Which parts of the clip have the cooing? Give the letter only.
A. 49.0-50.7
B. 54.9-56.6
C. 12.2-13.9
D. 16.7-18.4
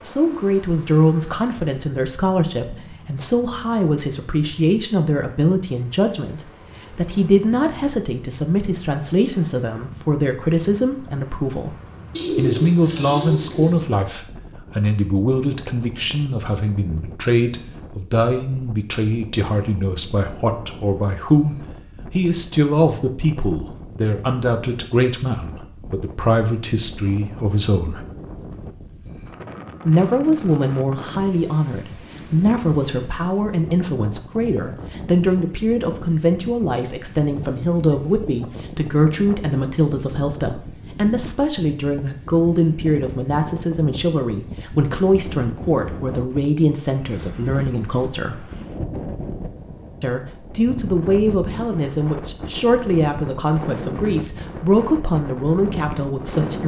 C.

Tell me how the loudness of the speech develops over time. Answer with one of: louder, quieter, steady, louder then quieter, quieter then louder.
steady.